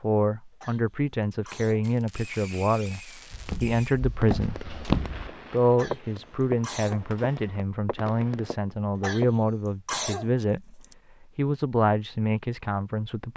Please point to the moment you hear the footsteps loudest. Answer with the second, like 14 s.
5 s.